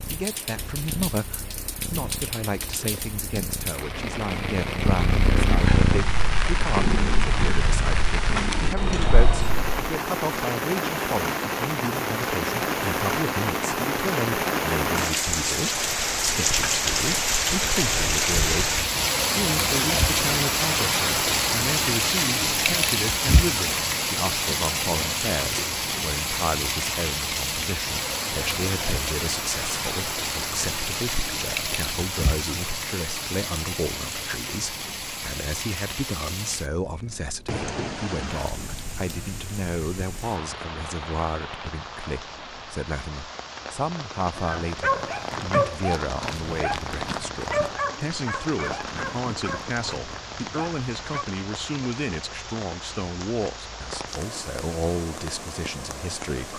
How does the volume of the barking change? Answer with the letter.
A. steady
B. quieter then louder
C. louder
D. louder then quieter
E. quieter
E.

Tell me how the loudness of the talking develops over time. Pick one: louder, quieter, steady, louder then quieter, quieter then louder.
steady.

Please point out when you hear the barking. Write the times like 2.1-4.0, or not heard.
44.3-51.2.